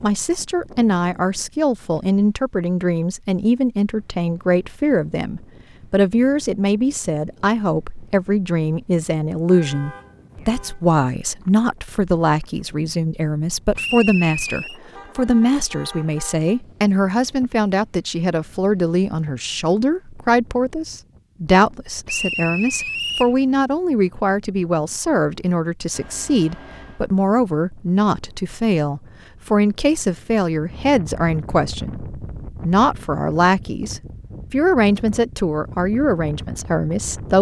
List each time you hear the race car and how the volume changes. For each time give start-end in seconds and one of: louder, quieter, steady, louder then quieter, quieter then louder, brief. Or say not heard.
not heard.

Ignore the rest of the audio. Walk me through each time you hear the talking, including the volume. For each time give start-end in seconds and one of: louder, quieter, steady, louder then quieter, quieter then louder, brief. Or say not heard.
0.0-37.3 steady.